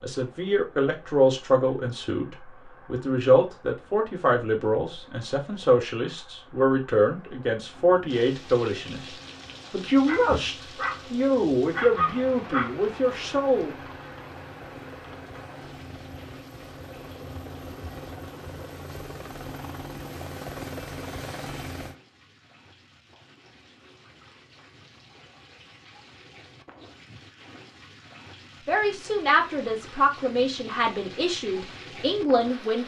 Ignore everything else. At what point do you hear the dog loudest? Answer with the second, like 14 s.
12 s.